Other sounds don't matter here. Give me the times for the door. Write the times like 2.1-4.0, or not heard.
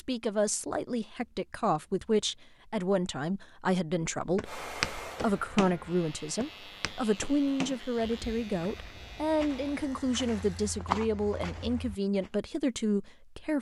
not heard.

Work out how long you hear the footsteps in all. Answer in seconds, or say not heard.
8 s.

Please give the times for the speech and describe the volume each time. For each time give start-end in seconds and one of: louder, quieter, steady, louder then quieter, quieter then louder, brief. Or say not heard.
0.0-13.5 steady.